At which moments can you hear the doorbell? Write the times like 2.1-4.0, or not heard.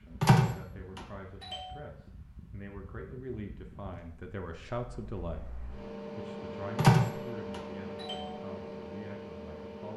0.2-1.6, 6.8-8.2.